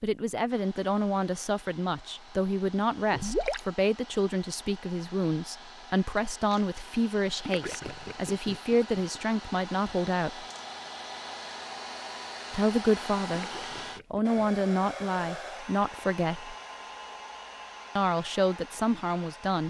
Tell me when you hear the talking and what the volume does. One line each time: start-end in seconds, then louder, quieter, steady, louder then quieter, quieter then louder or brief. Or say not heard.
0.0-10.4 steady
12.5-13.5 brief
14.1-16.6 brief
17.9-19.6 brief.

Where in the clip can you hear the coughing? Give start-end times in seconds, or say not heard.
not heard.